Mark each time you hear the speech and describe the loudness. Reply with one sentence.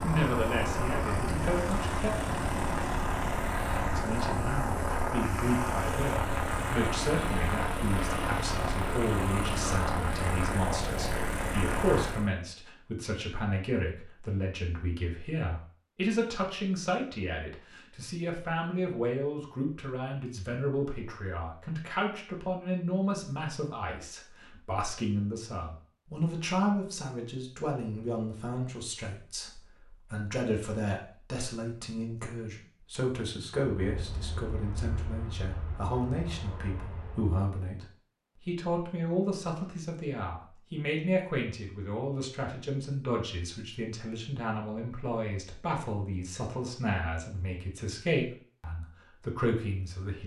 You can hear the speech briefly from 0.0 to 2.1 s; and from 3.9 to 50.2 s, at a steady volume.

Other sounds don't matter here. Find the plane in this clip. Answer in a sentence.
The plane can be heard from 0.0 to 12.3 s and from 33.8 to 37.4 s.